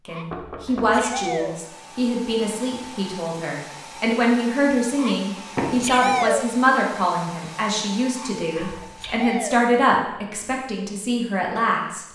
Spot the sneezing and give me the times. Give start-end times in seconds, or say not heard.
0.1-1.6, 5.0-6.5, 8.2-9.7.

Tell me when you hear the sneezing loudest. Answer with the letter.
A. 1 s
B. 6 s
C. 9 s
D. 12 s
B.